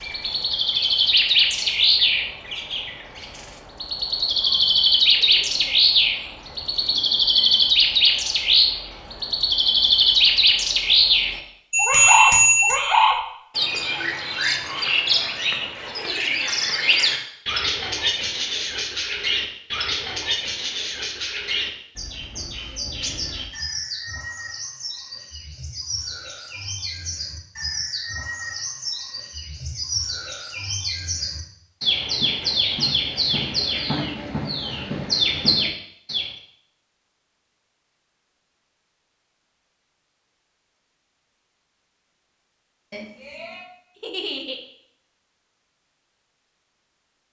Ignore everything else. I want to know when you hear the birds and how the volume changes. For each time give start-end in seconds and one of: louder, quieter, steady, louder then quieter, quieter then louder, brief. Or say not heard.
0.0-36.3 quieter then louder.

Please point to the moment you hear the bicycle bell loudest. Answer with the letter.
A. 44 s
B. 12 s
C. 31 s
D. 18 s
B.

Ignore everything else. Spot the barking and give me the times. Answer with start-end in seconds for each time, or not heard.
not heard.